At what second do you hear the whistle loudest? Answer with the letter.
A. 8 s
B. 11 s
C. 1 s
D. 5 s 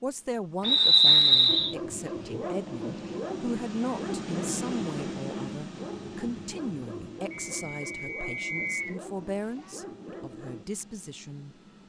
C.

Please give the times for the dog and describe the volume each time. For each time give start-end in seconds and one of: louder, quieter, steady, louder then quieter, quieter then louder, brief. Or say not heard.
1.4-10.7 quieter.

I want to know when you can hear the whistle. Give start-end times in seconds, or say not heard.
0.7-1.8, 7.3-9.0.